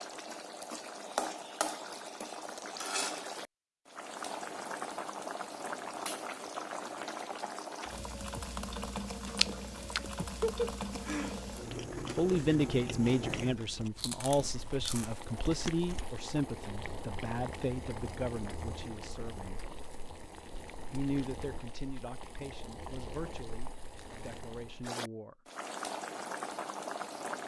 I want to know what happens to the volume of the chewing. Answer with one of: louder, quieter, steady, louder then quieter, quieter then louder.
quieter.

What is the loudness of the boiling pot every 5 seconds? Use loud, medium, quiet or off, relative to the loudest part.
loud, loud, loud, medium, medium, loud.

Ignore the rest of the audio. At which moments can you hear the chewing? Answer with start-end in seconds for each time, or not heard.
9.3-16.1.